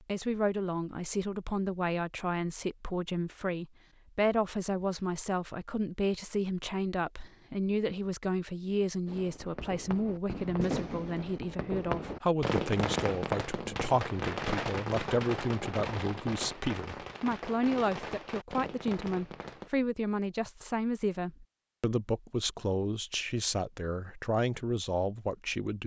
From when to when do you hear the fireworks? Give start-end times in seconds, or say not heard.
9.1-19.7.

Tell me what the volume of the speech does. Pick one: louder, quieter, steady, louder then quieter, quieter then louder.
steady.